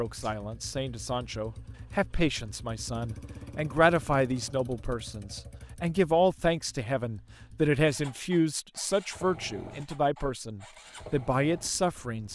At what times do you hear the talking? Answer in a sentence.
You can hear the talking from 0.0 to 12.3 s.